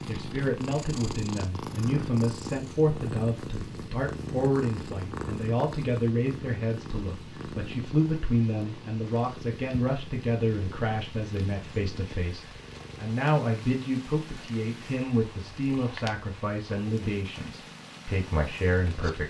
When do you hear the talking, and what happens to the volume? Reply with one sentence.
You can hear the talking from 0.1 to 19.2 s, at a steady volume.